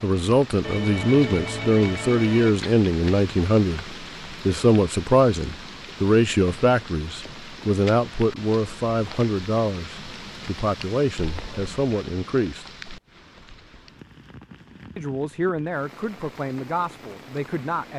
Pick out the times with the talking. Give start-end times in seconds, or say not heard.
0.0-12.8, 14.9-17.9.